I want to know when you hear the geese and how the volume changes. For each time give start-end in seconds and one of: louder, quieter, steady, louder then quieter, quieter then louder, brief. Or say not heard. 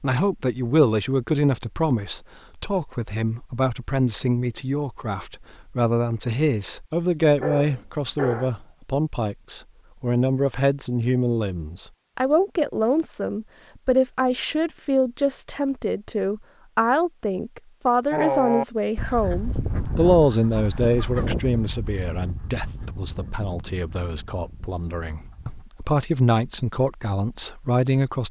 18.1-25.6 quieter.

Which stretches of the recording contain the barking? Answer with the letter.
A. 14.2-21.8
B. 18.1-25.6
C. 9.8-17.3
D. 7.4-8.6
D.